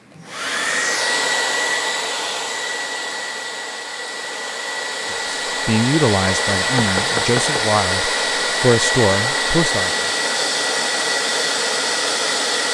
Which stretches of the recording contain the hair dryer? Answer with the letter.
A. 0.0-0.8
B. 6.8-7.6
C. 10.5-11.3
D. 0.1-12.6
D.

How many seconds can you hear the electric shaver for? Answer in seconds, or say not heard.
not heard.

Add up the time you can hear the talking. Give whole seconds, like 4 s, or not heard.
5 s.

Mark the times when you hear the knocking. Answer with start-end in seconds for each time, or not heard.
6.8-7.6.